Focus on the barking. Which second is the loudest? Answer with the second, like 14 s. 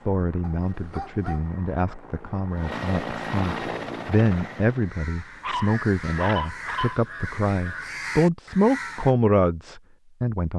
6 s.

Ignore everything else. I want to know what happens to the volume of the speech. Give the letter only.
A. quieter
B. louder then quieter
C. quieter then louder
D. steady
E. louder
E.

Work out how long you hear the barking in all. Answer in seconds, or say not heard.
3 s.